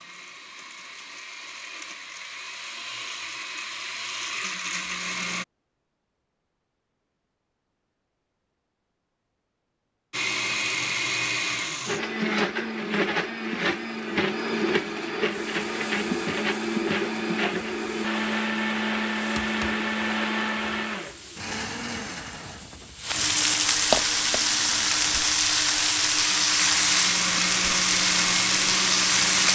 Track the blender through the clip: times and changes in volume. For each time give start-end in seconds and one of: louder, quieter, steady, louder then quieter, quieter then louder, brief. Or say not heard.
0.0-5.5 louder
10.1-29.5 quieter then louder.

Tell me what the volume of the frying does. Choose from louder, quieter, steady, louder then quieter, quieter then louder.
louder.